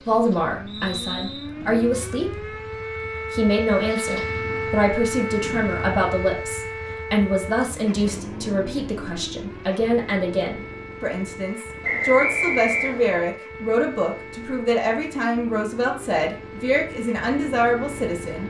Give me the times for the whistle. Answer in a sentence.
The whistle can be heard from 0.7 to 1.5 s and from 11.8 to 13.2 s.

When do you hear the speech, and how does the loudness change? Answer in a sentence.
You can hear the speech briefly from 0.0 to 2.5 s; and from 3.3 to 18.4 s, at a steady volume.